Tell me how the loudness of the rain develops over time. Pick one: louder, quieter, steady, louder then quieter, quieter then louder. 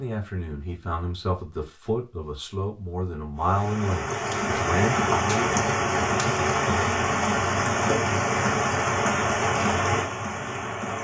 steady.